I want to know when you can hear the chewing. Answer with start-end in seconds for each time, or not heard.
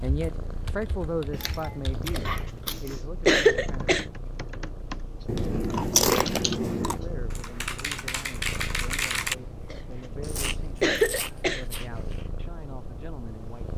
1.3-2.9, 5.2-7.0, 10.2-12.2.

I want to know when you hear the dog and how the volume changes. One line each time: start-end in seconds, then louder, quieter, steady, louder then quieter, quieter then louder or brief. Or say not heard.
not heard.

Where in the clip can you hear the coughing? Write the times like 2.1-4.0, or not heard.
2.1-4.0, 9.7-11.7.